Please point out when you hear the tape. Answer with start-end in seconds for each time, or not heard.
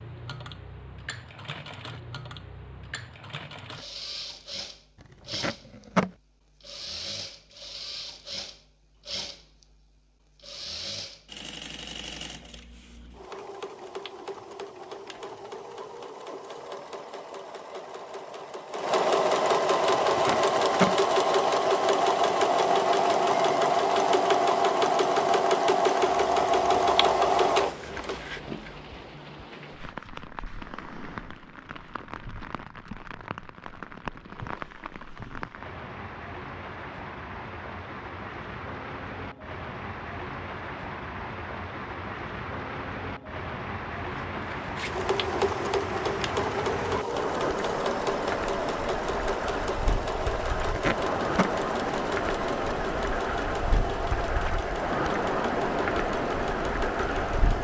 5.0-6.1, 19.9-20.9, 50.5-51.5.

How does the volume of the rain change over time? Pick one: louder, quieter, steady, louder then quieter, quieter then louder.
louder.